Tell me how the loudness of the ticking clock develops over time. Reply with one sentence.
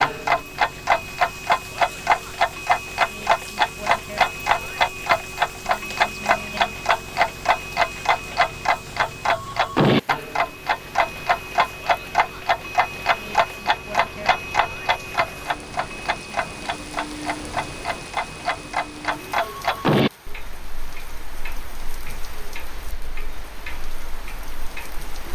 The loudness of the ticking clock goes down.